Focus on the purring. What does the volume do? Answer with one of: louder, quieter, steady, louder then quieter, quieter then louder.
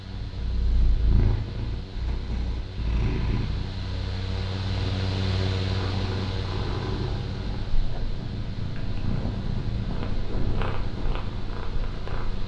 steady.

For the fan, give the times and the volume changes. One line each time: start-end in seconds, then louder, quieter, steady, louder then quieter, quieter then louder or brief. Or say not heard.
0.0-12.4 louder then quieter.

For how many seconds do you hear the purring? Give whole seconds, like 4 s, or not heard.
12 s.